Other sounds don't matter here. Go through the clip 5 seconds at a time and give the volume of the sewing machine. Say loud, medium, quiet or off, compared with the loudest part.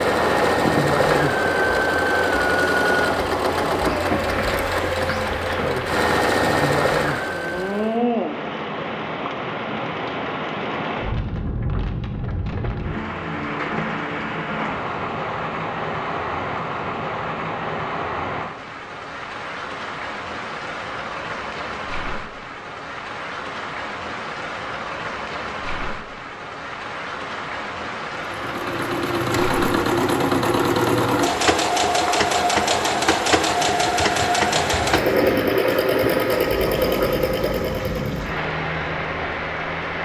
loud, loud, off, off, off, loud, loud, loud.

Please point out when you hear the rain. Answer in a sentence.
You can hear the rain from 0.0 to 40.0 s.